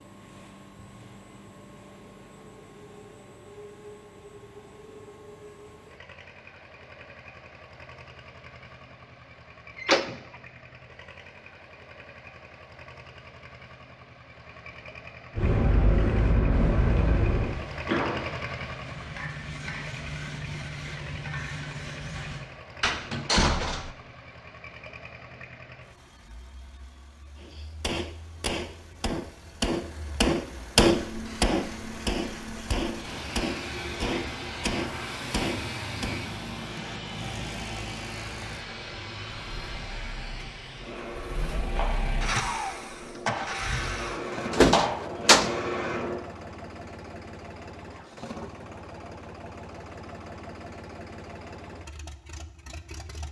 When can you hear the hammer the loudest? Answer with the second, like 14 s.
31 s.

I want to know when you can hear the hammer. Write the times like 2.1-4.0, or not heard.
27.4-36.2.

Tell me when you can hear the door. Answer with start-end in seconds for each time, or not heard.
9.8-10.2, 22.8-23.9, 44.1-45.5.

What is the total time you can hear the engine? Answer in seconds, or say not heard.
53 s.